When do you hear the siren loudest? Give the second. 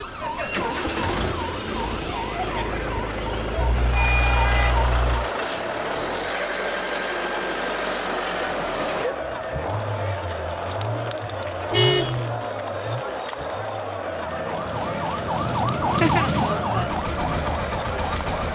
16 s.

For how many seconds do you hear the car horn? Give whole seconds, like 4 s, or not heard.
2 s.